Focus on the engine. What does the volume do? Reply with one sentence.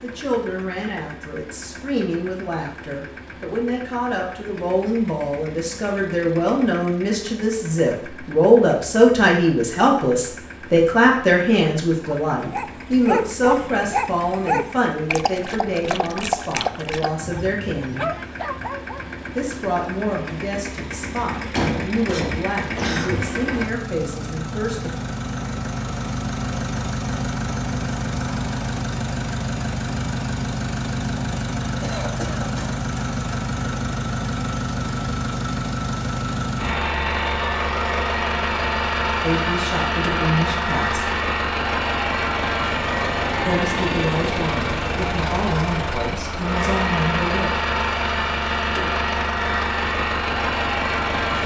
The volume of the engine goes up.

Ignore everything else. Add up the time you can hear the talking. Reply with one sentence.
The talking can be heard for 30 seconds in total.